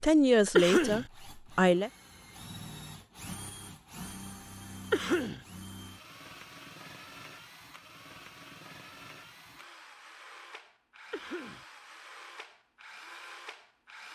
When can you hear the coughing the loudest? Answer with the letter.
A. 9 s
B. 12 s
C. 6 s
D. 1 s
D.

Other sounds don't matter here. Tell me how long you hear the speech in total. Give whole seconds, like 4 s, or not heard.
2 s.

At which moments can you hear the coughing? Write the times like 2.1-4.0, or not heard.
0.6-1.1, 4.9-5.5, 11.1-11.7.